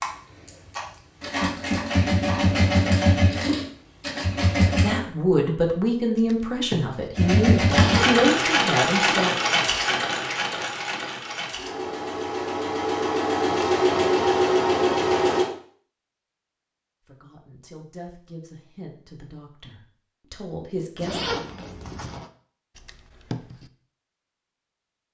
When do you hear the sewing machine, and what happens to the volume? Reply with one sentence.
The sewing machine can be heard from 0.0 to 5.0 s, getting louder then quieter; and from 7.2 to 15.5 s, getting quieter then louder.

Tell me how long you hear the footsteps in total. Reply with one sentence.
You can't hear the footsteps here.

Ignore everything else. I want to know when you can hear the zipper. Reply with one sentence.
You can hear the zipper from 7.7 to 8.2 s and from 21.0 to 22.3 s.